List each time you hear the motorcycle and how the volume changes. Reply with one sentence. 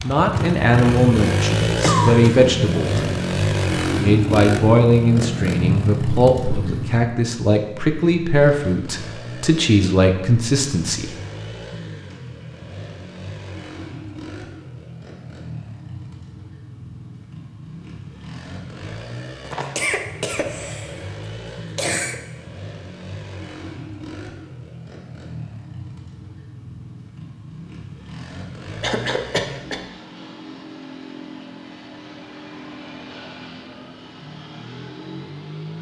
The motorcycle can be heard from 0.0 to 35.7 s, getting quieter.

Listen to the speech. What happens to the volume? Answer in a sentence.
The loudness of the speech stays about the same.